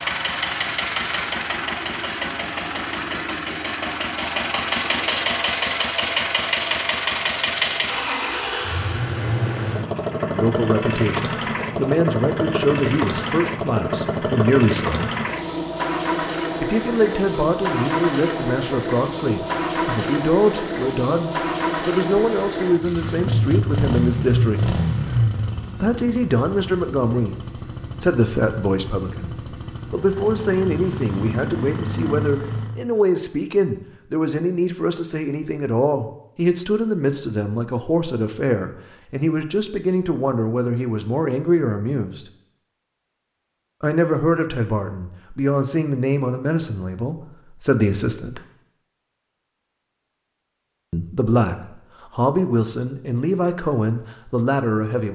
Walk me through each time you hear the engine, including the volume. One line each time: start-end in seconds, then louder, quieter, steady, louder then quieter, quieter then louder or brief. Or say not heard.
0.0-32.9 quieter.